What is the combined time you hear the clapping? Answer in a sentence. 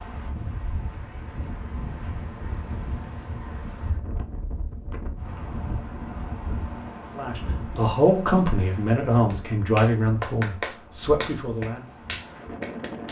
You can hear the clapping for 4 seconds altogether.